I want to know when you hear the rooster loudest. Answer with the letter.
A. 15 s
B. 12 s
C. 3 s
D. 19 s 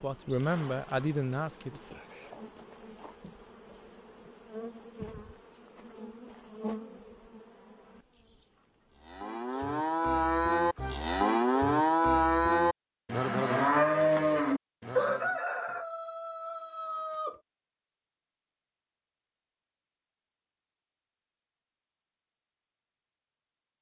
A.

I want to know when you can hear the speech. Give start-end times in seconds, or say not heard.
0.0-1.9.